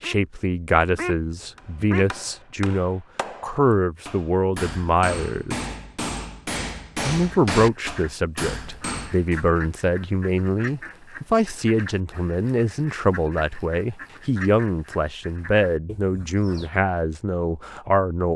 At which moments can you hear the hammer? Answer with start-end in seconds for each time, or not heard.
1.6-9.4.